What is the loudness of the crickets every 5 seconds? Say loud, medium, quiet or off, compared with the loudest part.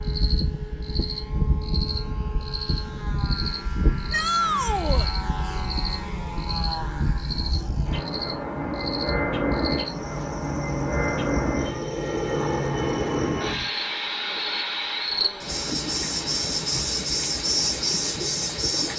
medium, medium, medium, loud.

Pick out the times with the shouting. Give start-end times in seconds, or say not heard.
4.1-5.1.